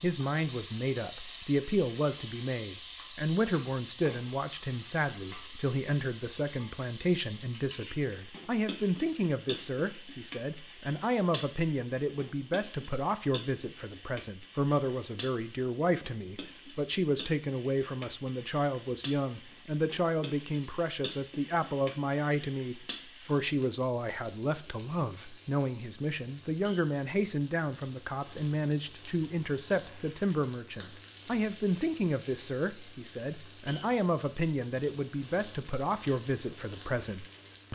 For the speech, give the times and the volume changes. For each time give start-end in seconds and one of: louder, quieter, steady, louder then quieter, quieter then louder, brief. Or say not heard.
0.0-37.6 steady.